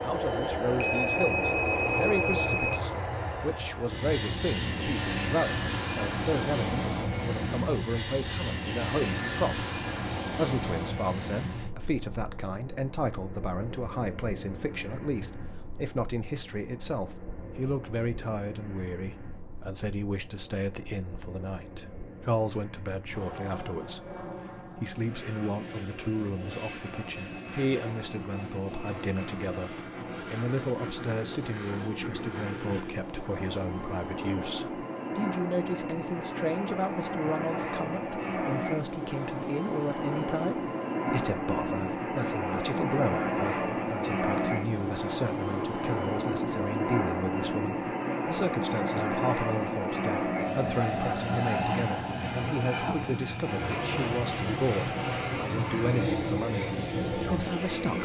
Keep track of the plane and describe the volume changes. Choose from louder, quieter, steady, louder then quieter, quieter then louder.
quieter then louder.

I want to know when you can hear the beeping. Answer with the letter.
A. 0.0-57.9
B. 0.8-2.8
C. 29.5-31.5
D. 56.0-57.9
B.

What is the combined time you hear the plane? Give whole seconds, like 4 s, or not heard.
58 s.